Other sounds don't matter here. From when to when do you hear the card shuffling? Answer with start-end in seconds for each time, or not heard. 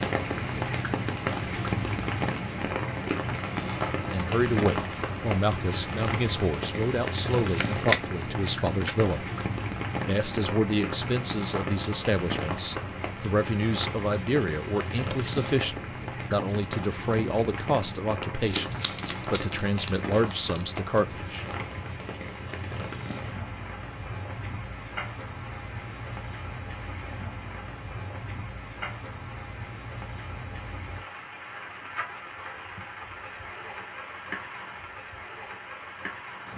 7.5-9.4, 18.4-20.6.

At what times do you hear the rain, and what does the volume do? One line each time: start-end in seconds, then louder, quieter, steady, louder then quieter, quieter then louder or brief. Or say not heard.
0.0-36.5 quieter.